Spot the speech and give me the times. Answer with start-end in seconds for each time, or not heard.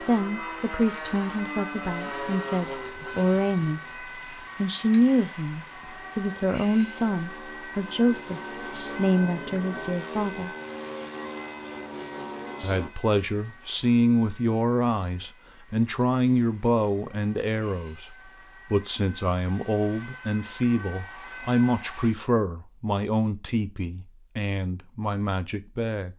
0.0-10.5, 12.6-26.1.